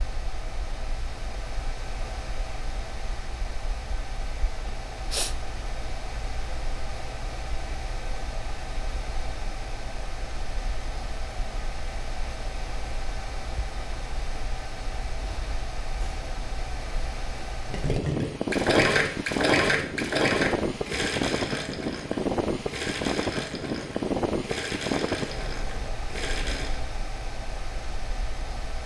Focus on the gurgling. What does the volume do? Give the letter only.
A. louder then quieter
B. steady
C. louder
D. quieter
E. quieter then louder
D.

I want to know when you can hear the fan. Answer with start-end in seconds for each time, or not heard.
0.0-28.8.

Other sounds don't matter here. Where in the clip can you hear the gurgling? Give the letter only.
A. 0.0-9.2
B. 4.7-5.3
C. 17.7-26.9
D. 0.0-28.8
C.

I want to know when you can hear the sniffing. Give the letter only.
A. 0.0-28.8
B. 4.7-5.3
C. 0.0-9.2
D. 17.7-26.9
B.